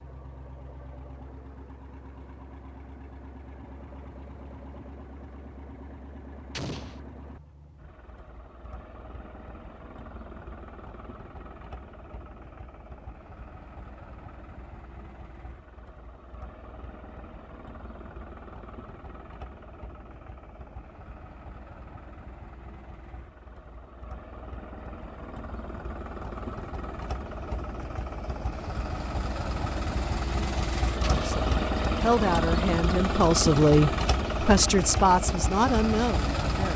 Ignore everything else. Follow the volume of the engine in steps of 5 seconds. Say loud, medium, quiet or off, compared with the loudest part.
quiet, quiet, quiet, quiet, quiet, medium, loud, loud.